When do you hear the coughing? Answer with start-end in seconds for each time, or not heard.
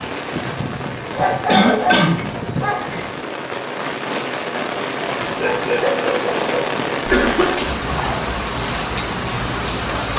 1.4-2.4, 7.0-7.8.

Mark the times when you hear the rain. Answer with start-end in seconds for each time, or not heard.
0.0-10.1.